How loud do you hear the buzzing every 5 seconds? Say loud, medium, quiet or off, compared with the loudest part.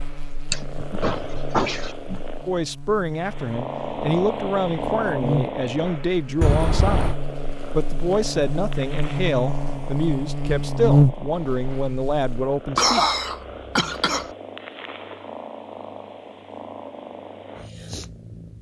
quiet, medium, loud, off.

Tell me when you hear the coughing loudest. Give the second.
13 s.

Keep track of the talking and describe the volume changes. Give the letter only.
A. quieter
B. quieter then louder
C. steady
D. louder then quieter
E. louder
C.